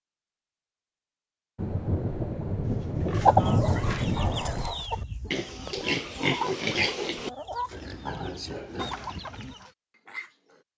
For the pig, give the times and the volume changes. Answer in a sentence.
You can hear the pig from 2.6 to 10.6 s, getting louder then quieter.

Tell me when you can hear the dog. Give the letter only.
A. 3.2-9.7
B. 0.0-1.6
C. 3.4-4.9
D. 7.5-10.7
C.